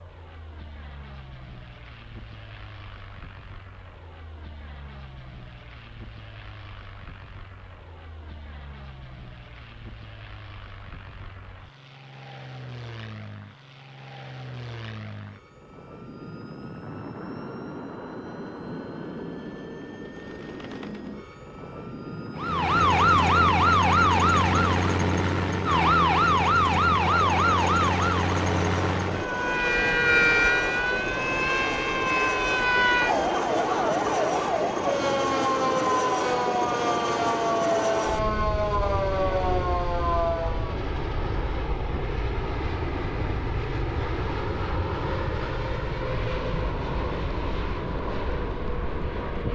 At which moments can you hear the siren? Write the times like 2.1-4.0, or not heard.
22.4-40.8.